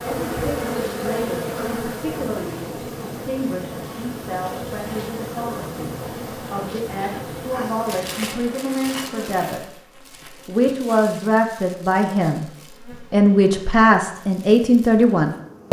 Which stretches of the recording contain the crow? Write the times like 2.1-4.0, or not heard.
not heard.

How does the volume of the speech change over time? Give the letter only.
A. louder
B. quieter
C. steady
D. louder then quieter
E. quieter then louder
A.